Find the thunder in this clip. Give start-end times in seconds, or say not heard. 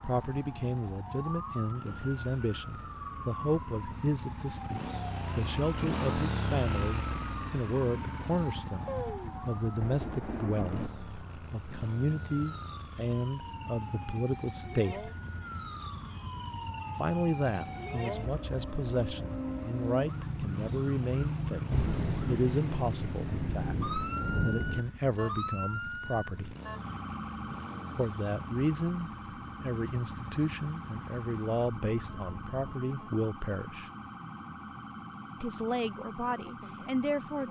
8.8-10.9, 21.7-24.8.